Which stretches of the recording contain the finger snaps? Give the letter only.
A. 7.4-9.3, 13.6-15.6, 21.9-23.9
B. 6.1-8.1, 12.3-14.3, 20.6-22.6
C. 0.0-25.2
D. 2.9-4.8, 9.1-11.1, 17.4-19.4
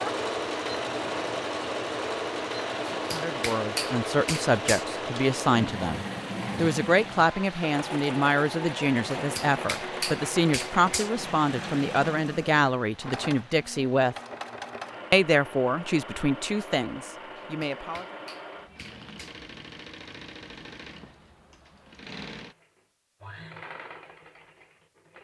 D.